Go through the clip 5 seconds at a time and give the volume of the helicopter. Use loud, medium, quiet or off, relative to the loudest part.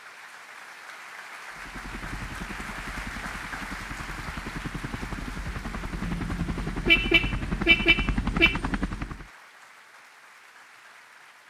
medium, loud, off.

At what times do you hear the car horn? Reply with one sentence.
You can hear the car horn from 6.0 to 8.6 s.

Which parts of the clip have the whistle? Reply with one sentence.
You can't hear the whistle here.